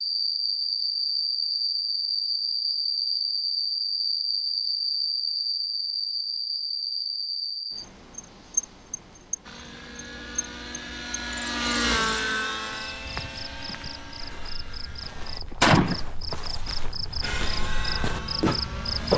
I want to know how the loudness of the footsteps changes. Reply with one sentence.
The volume of the footsteps goes up.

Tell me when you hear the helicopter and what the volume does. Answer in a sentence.
You can hear the helicopter from 9.4 to 15.4 s, getting louder then quieter; and briefly from 17.2 to 19.1 s.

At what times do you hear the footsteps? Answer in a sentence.
You can hear the footsteps from 13.1 to 19.1 s.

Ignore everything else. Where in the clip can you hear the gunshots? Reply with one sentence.
You can hear the gunshots from 15.6 to 16.0 s.